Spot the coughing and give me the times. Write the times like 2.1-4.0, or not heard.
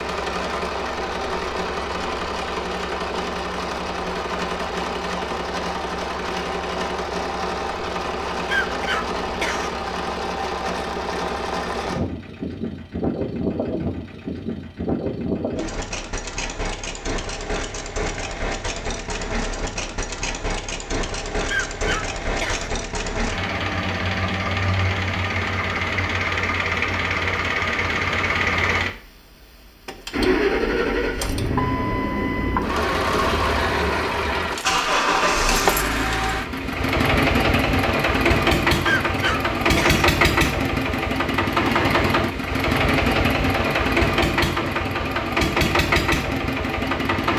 8.4-9.7, 21.4-22.7, 38.9-40.0.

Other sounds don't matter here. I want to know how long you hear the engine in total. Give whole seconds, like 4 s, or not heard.
47 s.